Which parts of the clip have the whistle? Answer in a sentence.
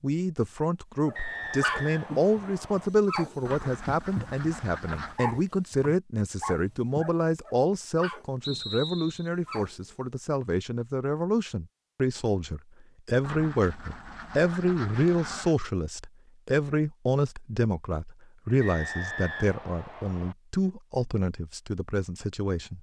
You can hear the whistle from 1.1 to 2.9 s, from 8.4 to 9.3 s and from 18.6 to 20.4 s.